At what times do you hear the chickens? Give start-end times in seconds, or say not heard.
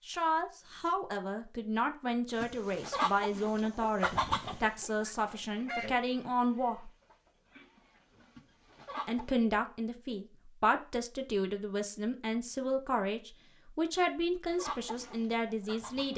2.3-9.3, 14.5-16.1.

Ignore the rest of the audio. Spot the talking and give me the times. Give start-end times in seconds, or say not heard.
0.1-6.9, 9.1-16.1.